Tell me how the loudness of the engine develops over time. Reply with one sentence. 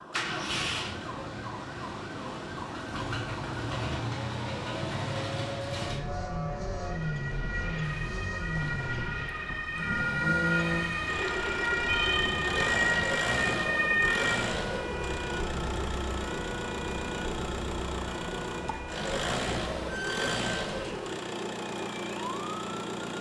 The loudness of the engine stays about the same.